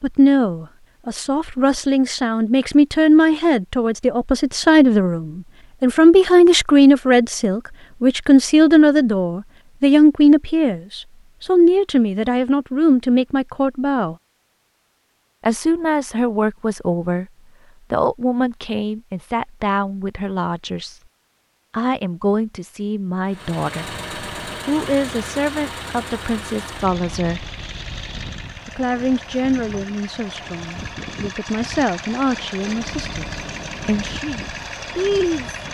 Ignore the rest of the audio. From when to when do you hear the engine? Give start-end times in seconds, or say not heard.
23.3-35.7.